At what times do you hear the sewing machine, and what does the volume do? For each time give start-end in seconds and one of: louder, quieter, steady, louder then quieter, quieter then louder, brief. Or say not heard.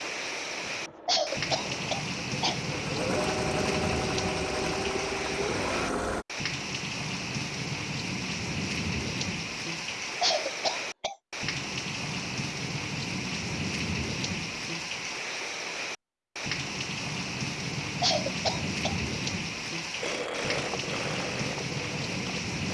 0.0-6.2 louder
20.0-22.7 brief.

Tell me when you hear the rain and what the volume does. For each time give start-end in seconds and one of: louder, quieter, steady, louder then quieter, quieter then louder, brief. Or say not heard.
0.0-22.7 steady.